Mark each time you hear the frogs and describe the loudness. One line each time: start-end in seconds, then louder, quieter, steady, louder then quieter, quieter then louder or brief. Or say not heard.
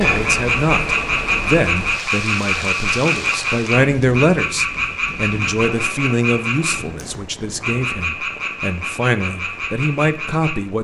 0.0-10.6 quieter.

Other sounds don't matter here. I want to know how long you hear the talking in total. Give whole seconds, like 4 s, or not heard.
11 s.